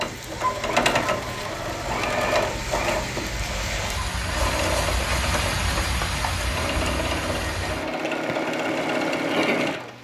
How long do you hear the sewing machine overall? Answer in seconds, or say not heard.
10 s.